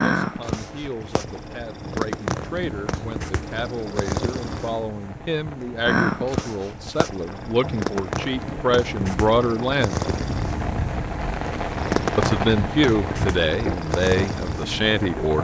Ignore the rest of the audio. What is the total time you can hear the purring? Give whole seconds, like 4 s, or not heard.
15 s.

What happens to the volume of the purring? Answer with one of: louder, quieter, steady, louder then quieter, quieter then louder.
steady.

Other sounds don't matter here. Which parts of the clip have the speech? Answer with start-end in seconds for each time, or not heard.
0.0-10.1, 12.2-15.3.